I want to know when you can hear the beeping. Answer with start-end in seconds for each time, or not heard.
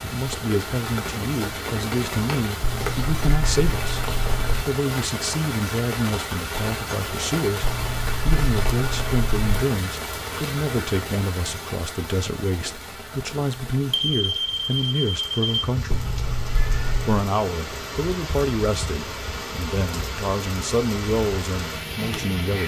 13.9-15.6.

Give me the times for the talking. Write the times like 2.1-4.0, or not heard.
0.0-16.1, 17.1-22.6.